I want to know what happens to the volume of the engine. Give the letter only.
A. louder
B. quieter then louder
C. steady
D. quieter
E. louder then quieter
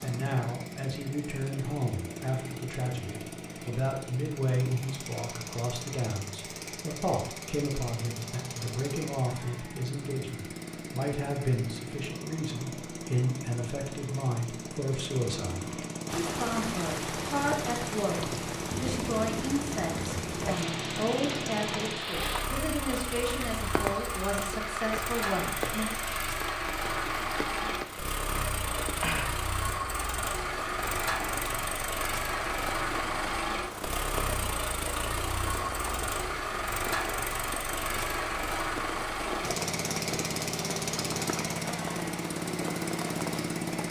A.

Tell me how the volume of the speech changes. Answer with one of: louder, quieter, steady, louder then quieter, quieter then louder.
steady.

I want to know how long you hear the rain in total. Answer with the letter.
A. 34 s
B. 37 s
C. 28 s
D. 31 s
C.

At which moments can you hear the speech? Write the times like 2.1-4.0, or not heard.
0.0-25.9.